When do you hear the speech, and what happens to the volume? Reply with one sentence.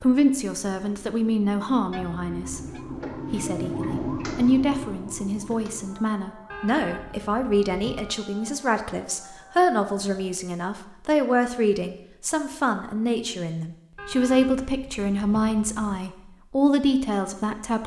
The speech can be heard briefly from 0.0 to 2.6 s; and from 3.3 to 17.8 s, at a steady volume.